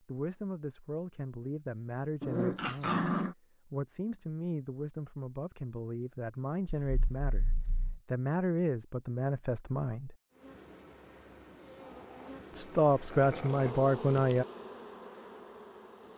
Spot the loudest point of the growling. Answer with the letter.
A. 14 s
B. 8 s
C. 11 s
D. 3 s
D.